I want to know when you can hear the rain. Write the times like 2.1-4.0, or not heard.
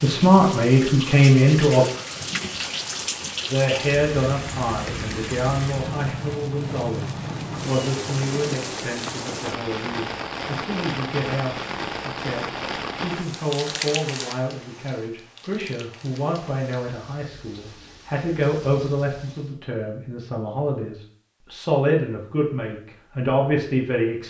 0.0-19.6.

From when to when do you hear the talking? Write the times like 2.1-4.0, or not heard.
0.0-1.9, 3.5-24.2.